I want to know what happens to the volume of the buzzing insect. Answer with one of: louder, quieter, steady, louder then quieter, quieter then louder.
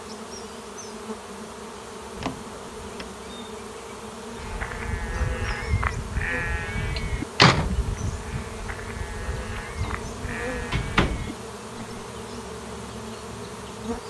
steady.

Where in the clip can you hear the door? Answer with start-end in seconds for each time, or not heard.
2.1-3.0, 7.0-7.8, 9.8-11.3.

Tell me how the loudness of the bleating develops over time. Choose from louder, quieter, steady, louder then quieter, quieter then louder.
quieter.